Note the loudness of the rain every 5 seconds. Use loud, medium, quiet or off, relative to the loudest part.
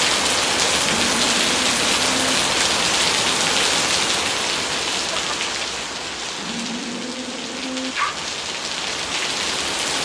loud, medium.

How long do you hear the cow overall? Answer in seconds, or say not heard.
3 s.